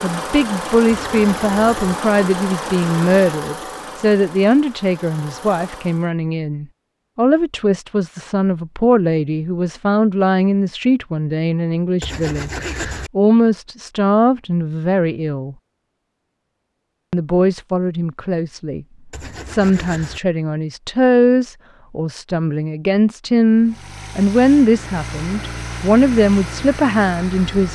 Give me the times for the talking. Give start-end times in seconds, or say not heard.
0.0-15.6, 17.1-18.9, 19.4-27.7.